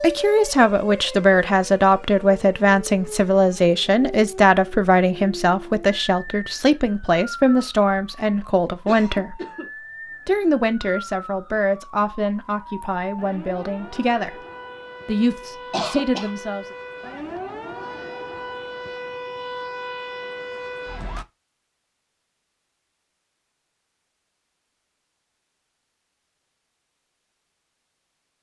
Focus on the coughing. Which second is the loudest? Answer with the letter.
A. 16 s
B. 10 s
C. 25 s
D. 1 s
A.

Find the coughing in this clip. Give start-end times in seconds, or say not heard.
8.8-9.7, 15.7-16.3.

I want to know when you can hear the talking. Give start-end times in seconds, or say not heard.
0.0-9.4, 10.2-14.3, 15.1-16.6.